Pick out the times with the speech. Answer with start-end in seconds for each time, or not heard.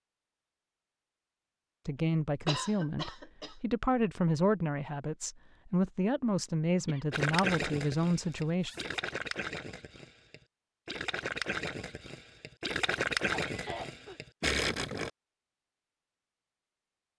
1.9-8.7.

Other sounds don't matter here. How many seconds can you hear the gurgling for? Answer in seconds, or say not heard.
8 s.